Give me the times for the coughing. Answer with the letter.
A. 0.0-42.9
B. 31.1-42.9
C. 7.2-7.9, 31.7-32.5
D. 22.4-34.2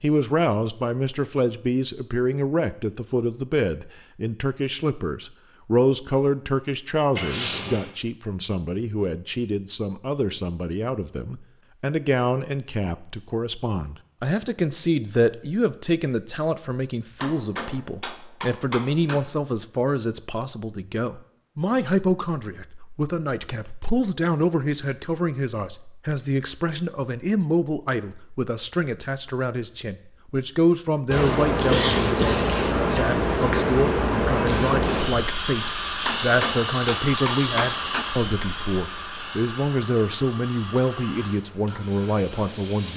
C.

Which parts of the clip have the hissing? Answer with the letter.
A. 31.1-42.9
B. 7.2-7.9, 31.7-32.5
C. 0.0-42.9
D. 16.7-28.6
A.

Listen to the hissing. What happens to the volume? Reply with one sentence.
The volume of the hissing goes down.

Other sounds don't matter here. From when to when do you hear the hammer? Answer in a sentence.
You can hear the hammer from 17.2 to 19.2 s and from 36.0 to 38.0 s.